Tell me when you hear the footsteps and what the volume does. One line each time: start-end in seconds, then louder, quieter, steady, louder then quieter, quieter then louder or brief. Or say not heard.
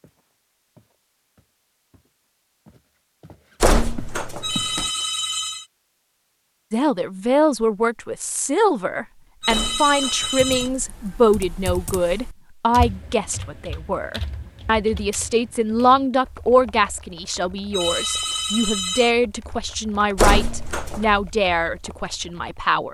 0.0-4.8 quieter then louder.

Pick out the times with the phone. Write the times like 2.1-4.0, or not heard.
4.4-5.7, 9.4-10.7, 17.7-19.1.